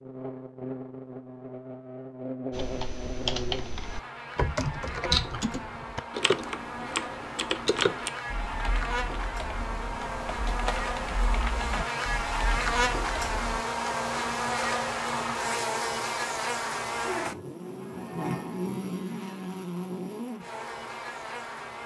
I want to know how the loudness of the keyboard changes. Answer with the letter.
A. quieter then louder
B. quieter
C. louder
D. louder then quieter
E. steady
B.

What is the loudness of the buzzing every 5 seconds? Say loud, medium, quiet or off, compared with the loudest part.
medium, medium, loud, loud, medium.